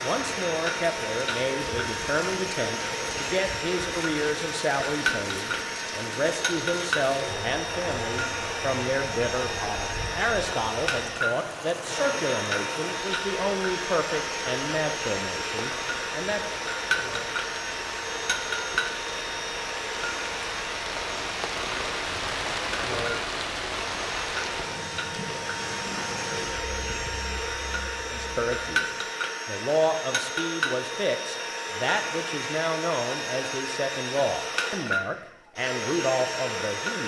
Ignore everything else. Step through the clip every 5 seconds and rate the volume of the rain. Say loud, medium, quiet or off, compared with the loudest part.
medium, medium, medium, medium, loud, medium, off, off.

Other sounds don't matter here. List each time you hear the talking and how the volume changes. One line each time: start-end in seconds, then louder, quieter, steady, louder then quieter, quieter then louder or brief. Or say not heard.
0.0-16.6 steady
28.1-37.0 steady.